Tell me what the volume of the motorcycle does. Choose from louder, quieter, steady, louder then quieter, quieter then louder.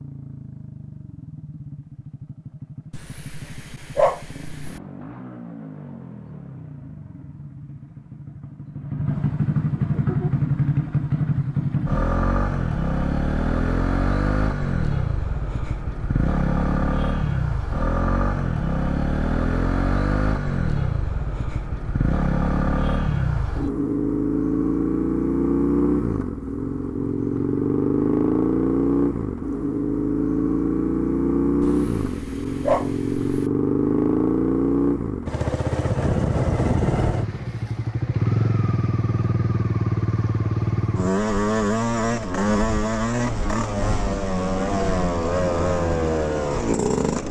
louder.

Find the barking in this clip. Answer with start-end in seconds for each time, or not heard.
2.9-4.8, 31.6-33.5.